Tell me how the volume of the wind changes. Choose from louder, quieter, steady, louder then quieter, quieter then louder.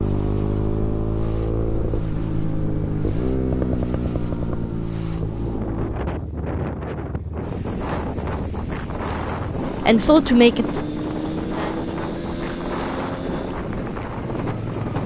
louder.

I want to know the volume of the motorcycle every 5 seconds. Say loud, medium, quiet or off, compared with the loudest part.
loud, medium, medium.